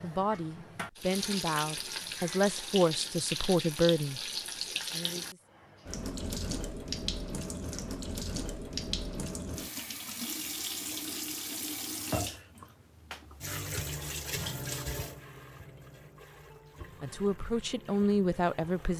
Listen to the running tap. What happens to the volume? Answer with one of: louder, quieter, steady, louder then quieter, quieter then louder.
quieter.